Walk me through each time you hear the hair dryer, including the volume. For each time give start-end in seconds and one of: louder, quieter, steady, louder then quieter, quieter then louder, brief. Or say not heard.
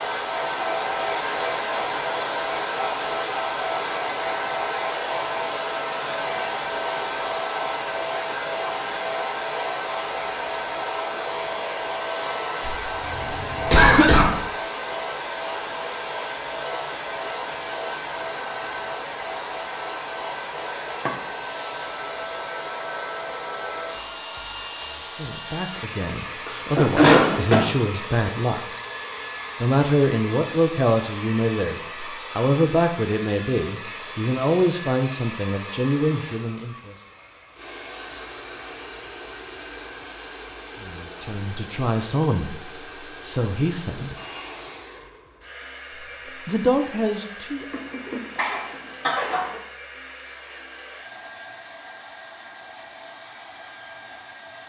0.0-54.6 quieter.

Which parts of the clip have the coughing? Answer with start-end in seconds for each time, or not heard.
12.6-14.3, 26.4-27.6, 47.7-49.5.